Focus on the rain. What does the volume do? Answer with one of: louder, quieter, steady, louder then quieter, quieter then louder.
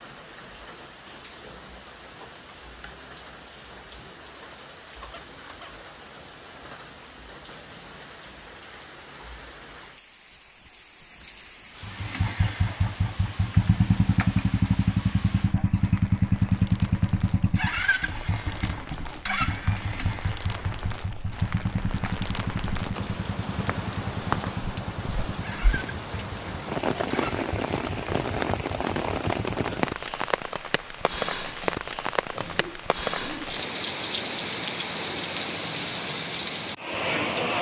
louder.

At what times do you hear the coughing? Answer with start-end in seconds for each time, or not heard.
5.0-5.8, 32.3-33.6.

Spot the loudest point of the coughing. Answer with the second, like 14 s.
33 s.